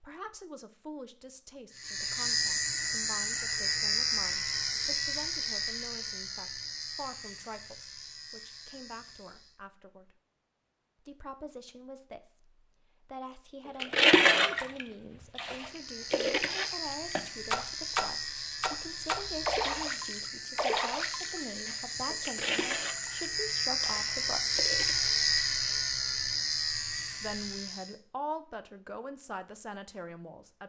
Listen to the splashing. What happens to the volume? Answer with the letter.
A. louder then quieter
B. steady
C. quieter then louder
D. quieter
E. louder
D.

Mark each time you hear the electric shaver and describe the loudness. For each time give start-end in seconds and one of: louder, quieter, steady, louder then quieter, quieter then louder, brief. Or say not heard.
1.7-9.6 quieter
15.6-27.9 louder.